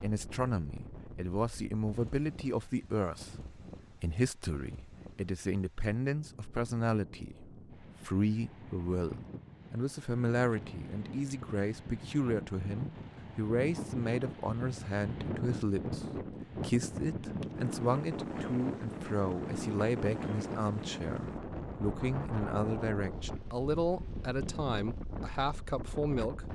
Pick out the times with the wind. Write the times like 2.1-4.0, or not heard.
0.0-26.5.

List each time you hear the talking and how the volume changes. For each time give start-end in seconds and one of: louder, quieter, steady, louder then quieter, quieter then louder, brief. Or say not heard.
0.0-26.4 steady.